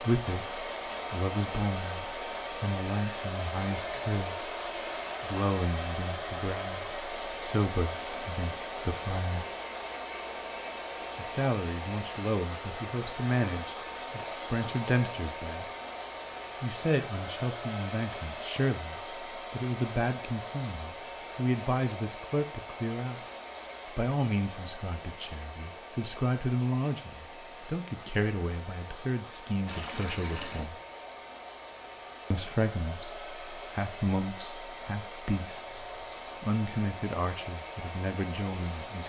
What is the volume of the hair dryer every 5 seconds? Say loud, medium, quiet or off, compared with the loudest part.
loud, loud, loud, loud, medium, medium, medium, medium.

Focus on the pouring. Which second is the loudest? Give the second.
30 s.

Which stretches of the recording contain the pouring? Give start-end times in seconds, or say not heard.
7.9-8.4, 29.6-30.6.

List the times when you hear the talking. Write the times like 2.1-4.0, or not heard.
0.0-4.5, 5.2-9.4, 11.2-15.7, 16.6-23.2, 23.9-30.8, 32.3-39.0.